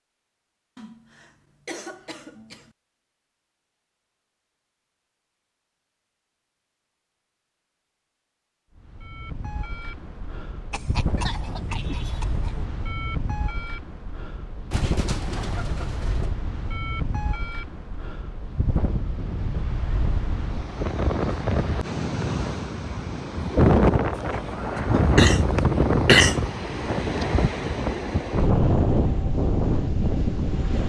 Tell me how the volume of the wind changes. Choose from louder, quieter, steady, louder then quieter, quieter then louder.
louder.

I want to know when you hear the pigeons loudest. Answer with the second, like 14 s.
15 s.